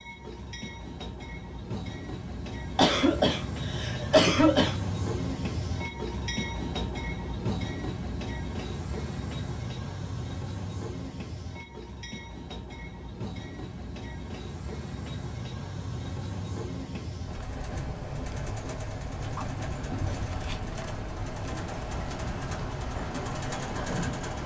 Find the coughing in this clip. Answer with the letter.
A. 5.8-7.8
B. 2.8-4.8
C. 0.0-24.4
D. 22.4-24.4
B.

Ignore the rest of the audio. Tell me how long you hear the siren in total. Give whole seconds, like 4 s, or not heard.
not heard.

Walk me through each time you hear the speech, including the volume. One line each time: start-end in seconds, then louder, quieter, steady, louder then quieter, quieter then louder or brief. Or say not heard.
not heard.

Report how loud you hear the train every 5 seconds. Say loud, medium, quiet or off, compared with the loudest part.
loud, loud, medium, loud, loud.